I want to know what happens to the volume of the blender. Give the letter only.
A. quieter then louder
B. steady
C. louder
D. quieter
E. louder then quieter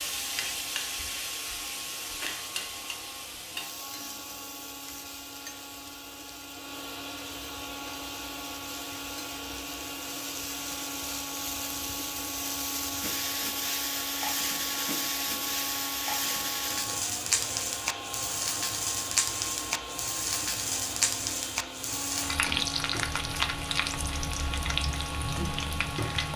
C.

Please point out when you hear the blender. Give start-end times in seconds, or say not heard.
0.0-26.3.